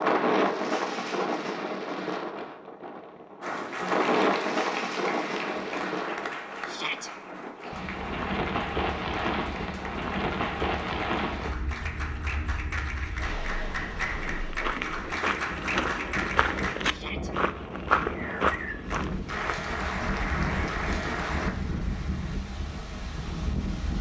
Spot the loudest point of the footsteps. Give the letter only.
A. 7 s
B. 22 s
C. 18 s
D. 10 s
C.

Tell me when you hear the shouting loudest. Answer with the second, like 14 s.
7 s.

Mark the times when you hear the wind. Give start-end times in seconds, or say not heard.
0.0-23.9.